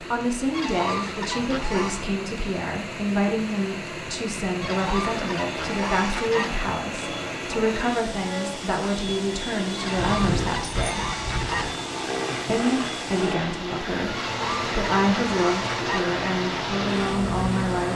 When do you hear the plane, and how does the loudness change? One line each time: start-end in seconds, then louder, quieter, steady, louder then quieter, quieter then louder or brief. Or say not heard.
5.0-17.9 louder.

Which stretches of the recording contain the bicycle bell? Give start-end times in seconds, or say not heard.
9.9-11.7.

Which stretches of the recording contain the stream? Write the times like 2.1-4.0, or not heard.
0.0-17.9.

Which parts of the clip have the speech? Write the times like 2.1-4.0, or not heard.
0.0-11.1, 12.4-17.9.